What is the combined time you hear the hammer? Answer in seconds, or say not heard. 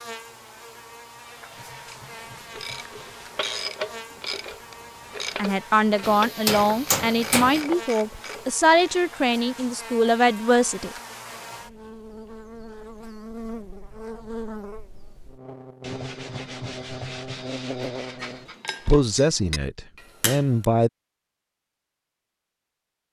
4 s.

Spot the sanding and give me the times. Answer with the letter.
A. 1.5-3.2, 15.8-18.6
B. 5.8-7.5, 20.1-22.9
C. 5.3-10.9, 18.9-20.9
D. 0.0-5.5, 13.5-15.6
A.